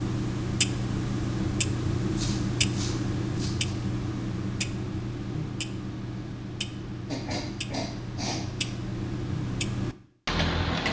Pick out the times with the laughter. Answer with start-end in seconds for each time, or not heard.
not heard.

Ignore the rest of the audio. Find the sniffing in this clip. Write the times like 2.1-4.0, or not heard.
2.1-3.8, 7.0-8.7.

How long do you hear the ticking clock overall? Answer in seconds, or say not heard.
11 s.